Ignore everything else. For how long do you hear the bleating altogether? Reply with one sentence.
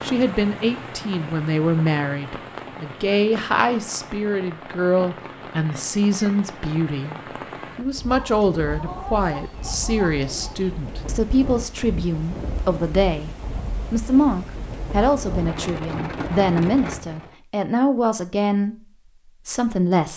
The bleating can't be heard in this clip.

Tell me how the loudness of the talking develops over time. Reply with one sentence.
The loudness of the talking stays about the same.